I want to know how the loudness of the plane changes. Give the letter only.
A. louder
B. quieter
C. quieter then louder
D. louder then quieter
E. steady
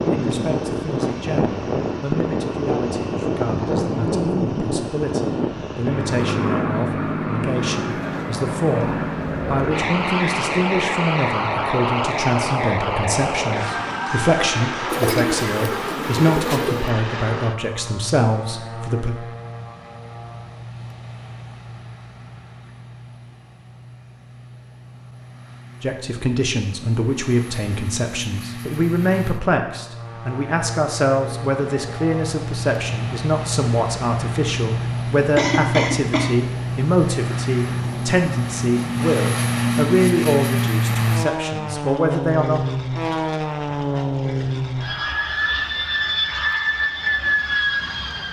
C.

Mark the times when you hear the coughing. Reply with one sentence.
The coughing can be heard from 35.4 to 36.3 s.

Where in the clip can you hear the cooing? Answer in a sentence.
The cooing can be heard from 14.8 to 16.9 s.